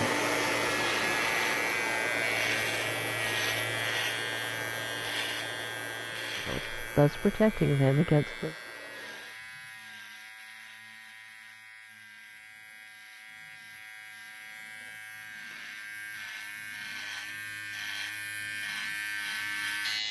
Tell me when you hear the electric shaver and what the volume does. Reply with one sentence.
You can hear the electric shaver from 0.0 to 20.0 s, getting quieter then louder.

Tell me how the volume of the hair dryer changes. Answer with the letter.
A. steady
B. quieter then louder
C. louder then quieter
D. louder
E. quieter
E.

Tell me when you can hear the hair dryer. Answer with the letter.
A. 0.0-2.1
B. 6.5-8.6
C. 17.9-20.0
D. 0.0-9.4
D.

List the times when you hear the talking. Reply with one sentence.
You can hear the talking from 6.5 to 8.6 s.